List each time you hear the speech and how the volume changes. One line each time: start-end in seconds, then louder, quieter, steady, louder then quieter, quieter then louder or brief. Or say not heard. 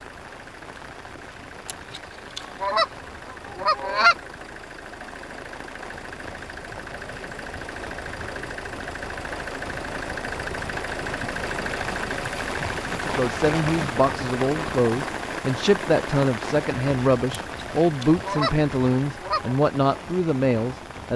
12.9-21.1 steady.